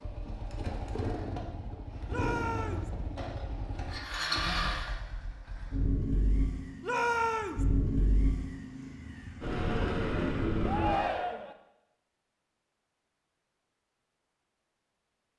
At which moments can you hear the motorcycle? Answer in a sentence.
The motorcycle can be heard from 0.0 to 11.0 s.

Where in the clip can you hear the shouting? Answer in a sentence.
The shouting can be heard from 2.0 to 2.9 s, from 6.8 to 7.7 s and from 10.6 to 11.6 s.